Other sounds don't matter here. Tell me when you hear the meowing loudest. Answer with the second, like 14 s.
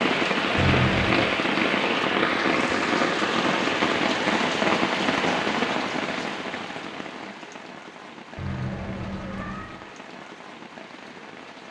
1 s.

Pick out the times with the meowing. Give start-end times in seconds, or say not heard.
0.6-1.2, 8.3-9.7.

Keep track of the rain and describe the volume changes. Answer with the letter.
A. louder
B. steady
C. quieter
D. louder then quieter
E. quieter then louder
C.